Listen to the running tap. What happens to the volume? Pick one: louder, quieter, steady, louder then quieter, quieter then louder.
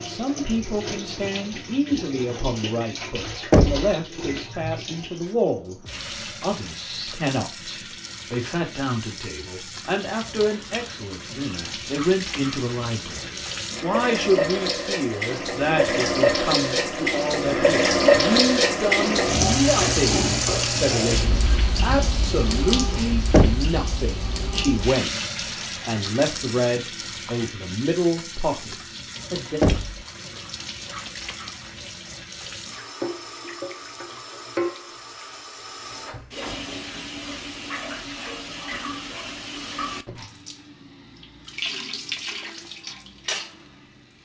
louder then quieter.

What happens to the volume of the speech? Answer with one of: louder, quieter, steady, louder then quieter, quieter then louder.
steady.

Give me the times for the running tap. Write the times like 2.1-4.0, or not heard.
0.0-44.1.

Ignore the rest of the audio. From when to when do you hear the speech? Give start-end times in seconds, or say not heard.
0.0-5.8, 6.4-29.6.